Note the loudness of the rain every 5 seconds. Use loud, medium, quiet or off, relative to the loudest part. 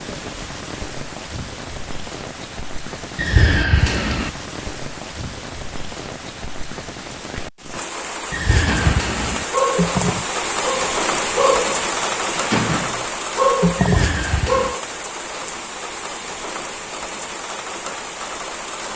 medium, medium, loud, medium.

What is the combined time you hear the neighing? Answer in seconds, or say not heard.
3 s.